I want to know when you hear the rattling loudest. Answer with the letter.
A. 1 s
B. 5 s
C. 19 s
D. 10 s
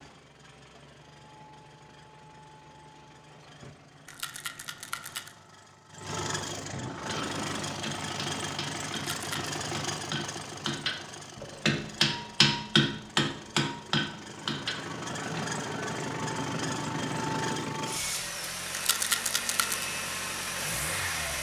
C.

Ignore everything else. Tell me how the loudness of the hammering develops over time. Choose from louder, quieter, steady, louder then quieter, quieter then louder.
louder then quieter.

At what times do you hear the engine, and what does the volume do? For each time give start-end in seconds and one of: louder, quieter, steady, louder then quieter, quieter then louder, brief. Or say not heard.
0.0-21.3 louder.